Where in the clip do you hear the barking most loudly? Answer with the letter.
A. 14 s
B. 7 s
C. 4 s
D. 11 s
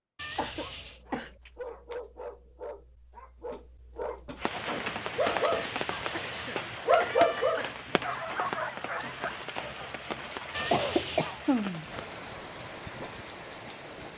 B.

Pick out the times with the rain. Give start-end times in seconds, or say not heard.
4.3-14.1.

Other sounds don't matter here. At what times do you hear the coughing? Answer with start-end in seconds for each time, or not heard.
0.3-1.9, 6.0-7.8, 10.7-11.8.